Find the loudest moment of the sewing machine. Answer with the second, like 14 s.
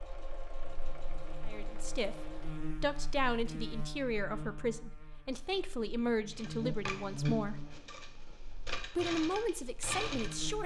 10 s.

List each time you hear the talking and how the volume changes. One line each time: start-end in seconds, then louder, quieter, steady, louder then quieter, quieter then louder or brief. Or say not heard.
1.4-7.7 steady
8.8-10.6 brief.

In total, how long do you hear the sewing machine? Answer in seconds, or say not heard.
7 s.